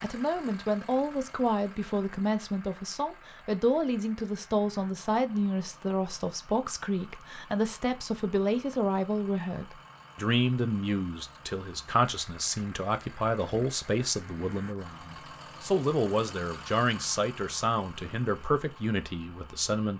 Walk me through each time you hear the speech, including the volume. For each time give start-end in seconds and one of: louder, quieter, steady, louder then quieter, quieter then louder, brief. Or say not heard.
0.0-19.9 steady.